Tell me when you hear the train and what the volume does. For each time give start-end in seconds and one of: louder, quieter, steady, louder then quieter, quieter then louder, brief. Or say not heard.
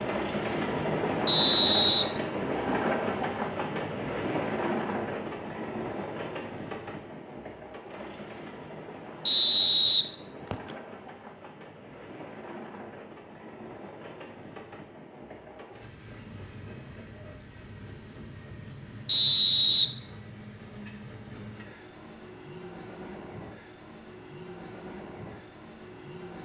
0.0-26.4 quieter.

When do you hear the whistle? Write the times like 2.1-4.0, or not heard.
1.2-2.0, 9.2-10.8, 19.1-19.9.